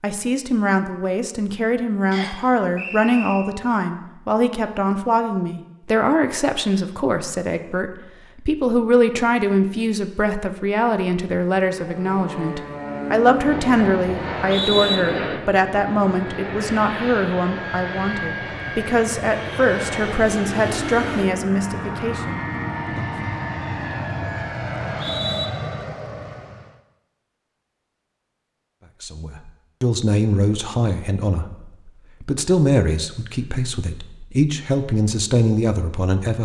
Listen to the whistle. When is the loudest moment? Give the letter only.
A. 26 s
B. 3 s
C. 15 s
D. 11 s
C.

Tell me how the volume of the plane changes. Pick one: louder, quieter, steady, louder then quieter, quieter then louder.
steady.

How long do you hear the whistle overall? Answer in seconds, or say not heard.
3 s.